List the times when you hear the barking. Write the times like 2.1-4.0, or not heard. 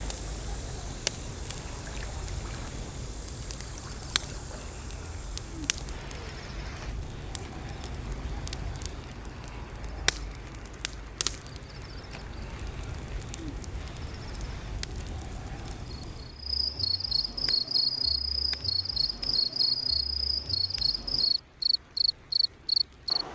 not heard.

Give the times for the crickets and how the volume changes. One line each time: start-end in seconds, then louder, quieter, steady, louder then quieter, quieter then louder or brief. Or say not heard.
0.0-23.2 louder.